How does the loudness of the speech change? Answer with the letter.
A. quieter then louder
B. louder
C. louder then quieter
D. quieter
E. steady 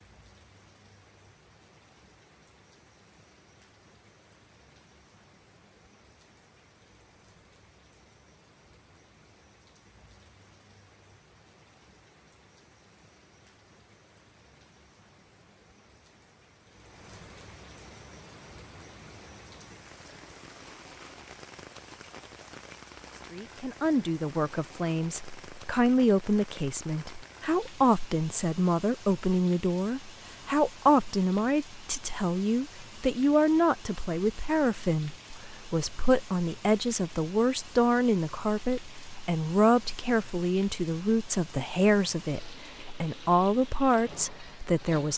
E.